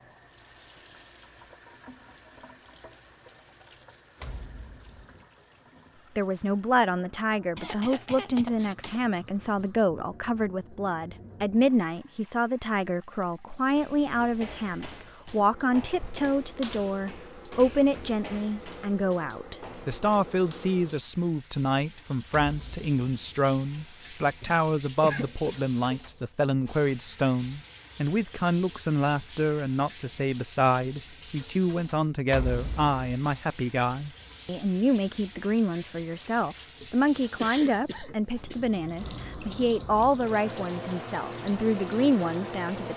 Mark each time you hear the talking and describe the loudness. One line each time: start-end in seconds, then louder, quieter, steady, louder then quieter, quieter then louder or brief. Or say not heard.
6.2-42.9 steady.